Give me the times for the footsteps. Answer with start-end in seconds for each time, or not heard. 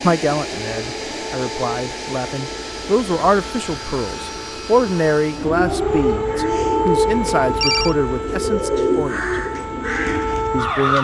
not heard.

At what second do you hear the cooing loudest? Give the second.
9 s.